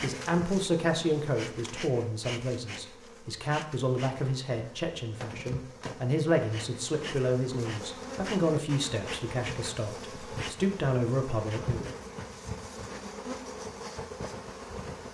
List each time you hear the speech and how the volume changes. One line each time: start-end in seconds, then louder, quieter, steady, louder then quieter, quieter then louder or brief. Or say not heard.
0.0-11.8 steady.